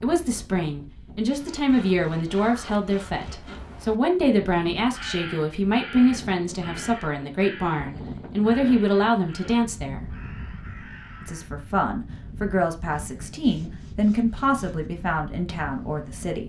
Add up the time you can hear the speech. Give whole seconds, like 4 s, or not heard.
15 s.